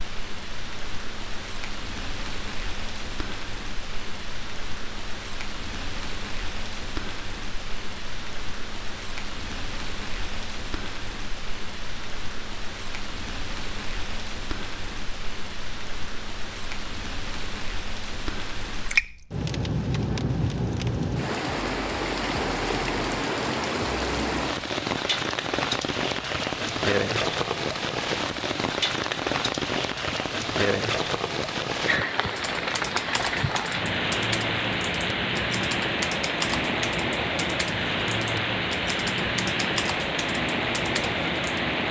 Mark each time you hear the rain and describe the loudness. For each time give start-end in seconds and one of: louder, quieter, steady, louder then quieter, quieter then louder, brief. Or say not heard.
0.0-41.8 louder.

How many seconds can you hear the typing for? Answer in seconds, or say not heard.
9 s.